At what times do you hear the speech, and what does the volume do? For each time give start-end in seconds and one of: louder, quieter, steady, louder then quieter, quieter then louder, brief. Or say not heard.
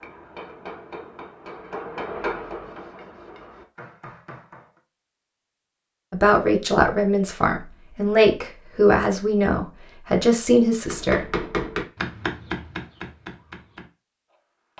6.1-11.4 steady.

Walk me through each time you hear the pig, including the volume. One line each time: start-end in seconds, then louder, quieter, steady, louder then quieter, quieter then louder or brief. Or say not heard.
not heard.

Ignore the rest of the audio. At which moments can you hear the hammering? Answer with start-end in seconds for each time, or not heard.
0.0-4.8, 10.9-14.7.